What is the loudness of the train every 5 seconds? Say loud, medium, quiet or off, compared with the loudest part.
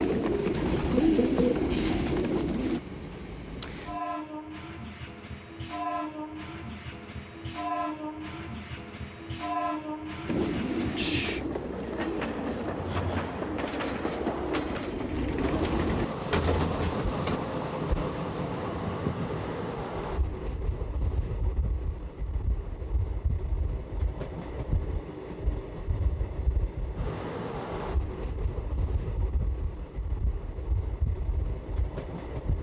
medium, loud, loud, loud, medium, medium, medium.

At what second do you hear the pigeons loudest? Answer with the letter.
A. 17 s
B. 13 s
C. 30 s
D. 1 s
D.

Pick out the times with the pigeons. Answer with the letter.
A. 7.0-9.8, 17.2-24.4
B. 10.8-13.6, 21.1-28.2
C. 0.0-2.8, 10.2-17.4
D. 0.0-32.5
C.